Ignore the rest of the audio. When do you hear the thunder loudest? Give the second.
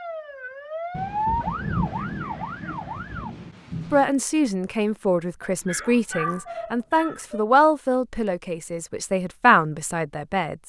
2 s.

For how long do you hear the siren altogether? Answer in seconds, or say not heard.
3 s.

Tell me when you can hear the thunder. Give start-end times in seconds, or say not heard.
0.9-4.0.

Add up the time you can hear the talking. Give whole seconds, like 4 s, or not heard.
7 s.